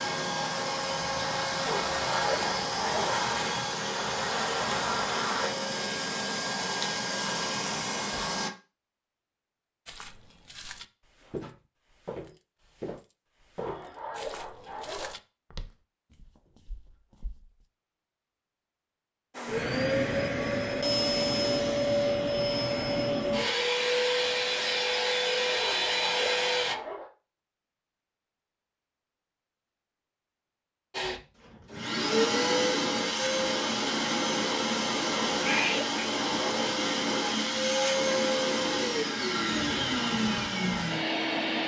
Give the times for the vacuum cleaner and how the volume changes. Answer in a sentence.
The vacuum cleaner can be heard from 0.0 to 8.5 s, at a steady volume; from 19.4 to 26.8 s, at a steady volume; and from 30.9 to 41.6 s, at a steady volume.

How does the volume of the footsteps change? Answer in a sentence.
The loudness of the footsteps goes down.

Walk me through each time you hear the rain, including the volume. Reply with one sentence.
You can't hear the rain here.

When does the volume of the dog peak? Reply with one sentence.
The loudest moment of the dog is at 2 seconds.